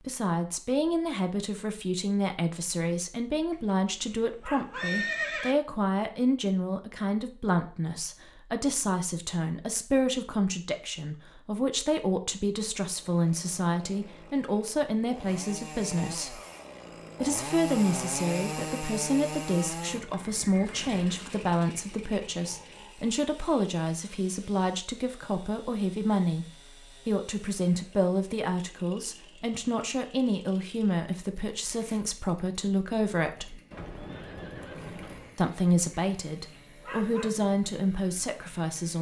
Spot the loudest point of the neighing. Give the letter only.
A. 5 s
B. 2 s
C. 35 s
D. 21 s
A.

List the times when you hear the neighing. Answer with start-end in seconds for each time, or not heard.
4.7-5.5, 20.0-21.2, 33.7-35.4.